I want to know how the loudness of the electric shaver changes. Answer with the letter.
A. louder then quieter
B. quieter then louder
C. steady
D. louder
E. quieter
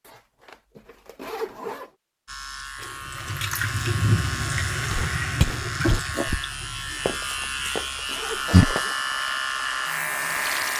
D.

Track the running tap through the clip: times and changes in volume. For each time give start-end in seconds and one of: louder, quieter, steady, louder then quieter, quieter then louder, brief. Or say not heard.
2.8-10.7 quieter then louder.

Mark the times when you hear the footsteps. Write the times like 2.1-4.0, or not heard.
4.9-6.5, 7.0-8.8.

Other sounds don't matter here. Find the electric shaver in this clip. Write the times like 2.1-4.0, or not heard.
2.2-10.7.